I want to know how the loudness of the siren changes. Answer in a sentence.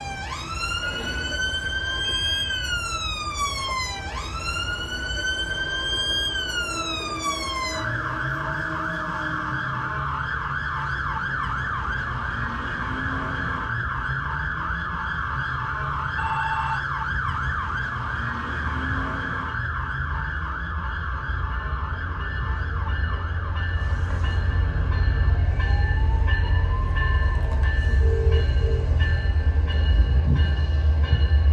The loudness of the siren goes down.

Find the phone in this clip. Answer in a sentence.
The phone can be heard from 0.8 to 2.8 s, from 16.1 to 16.8 s and from 27.9 to 28.9 s.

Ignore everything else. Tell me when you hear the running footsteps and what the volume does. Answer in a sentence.
You can't hear the running footsteps here.